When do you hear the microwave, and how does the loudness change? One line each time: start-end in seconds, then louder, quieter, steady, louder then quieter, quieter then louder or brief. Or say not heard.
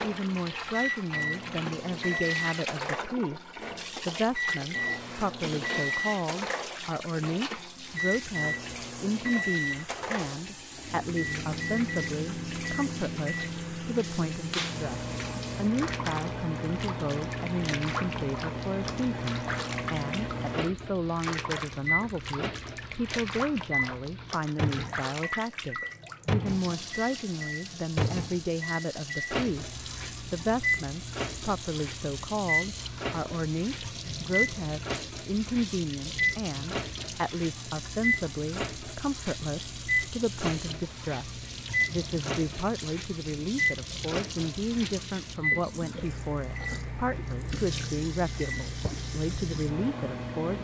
0.0-50.5 steady.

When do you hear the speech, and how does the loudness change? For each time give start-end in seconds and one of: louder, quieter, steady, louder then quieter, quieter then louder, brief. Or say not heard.
0.0-50.5 steady.